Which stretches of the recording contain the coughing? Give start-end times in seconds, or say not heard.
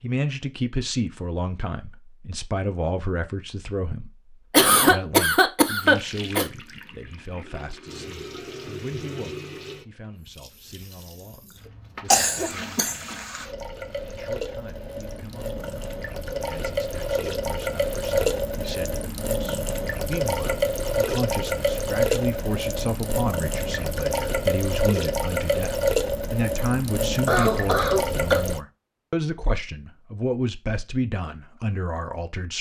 4.5-6.5, 12.1-13.4, 27.2-28.4.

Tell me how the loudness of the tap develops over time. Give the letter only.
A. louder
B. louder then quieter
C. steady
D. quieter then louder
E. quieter
A.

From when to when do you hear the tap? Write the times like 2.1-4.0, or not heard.
5.8-28.6.